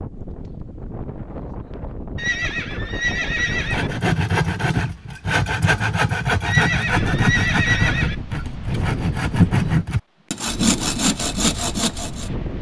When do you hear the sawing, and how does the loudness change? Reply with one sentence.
The sawing can be heard from 3.5 to 12.3 s, at a steady volume.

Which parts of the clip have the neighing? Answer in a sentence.
The neighing can be heard from 2.1 to 3.9 s and from 6.5 to 8.2 s.